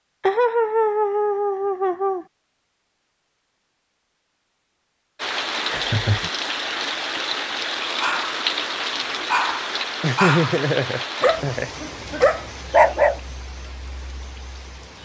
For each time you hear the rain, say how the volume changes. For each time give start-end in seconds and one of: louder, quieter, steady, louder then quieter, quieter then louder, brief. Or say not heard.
5.2-15.0 quieter.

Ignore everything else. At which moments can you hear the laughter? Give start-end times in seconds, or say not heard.
0.2-2.2, 5.7-6.3, 10.0-11.7.